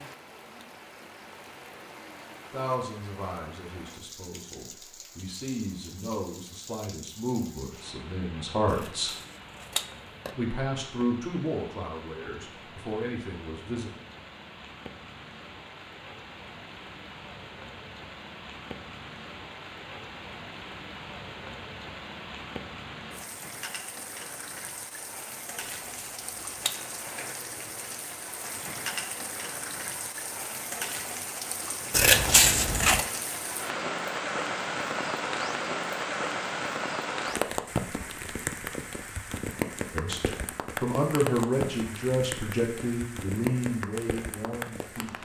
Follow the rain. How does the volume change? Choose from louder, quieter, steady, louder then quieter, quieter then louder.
louder.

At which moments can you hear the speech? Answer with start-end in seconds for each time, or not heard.
2.5-9.1, 10.3-13.9, 39.9-45.1.